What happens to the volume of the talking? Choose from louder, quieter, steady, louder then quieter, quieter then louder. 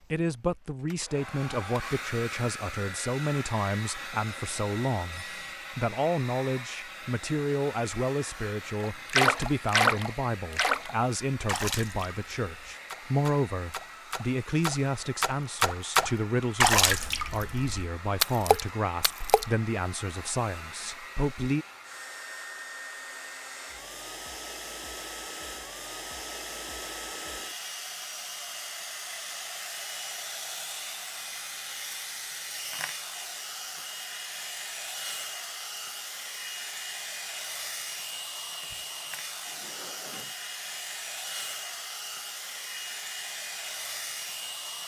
steady.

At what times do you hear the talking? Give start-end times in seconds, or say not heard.
0.1-21.6.